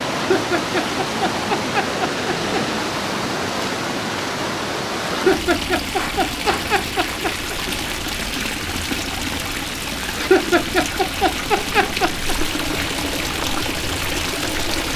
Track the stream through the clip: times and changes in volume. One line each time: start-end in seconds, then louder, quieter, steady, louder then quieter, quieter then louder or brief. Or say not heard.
0.0-14.9 steady.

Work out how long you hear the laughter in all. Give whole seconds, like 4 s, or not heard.
7 s.